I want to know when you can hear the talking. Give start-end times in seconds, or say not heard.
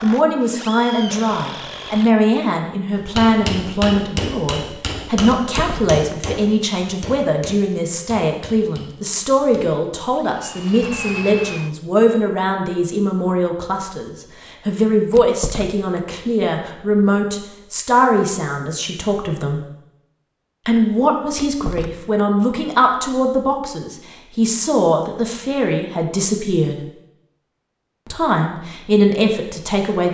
0.0-19.6, 20.6-26.8, 28.1-30.0.